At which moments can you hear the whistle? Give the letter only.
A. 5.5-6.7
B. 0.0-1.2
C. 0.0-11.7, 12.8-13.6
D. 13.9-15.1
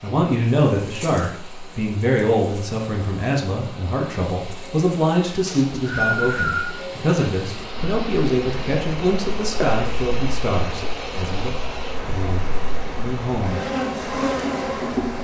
A.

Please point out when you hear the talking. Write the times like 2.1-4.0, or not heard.
0.0-11.7, 12.8-13.6.